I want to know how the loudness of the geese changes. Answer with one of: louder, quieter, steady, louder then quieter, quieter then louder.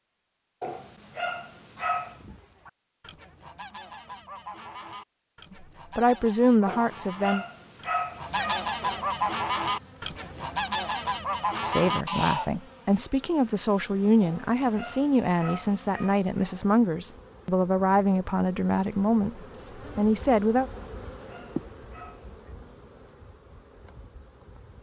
louder.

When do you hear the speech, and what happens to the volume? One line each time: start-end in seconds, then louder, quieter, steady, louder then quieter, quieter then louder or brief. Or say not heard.
6.0-7.5 brief
11.7-20.7 steady.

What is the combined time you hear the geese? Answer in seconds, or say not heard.
11 s.